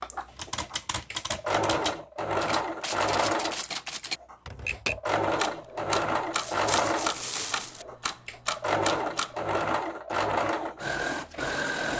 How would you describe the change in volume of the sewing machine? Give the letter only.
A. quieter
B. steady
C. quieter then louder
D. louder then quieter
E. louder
B.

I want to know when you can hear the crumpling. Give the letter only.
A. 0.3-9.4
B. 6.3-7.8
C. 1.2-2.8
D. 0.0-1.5
B.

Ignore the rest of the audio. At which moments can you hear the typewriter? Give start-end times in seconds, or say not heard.
0.3-9.4.